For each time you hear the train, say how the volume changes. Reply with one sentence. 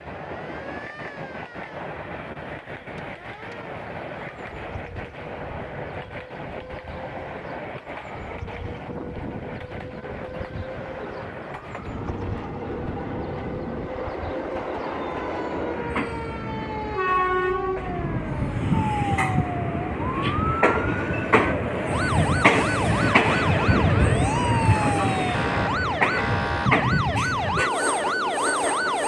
The train can be heard from 0.0 to 29.0 s, getting louder.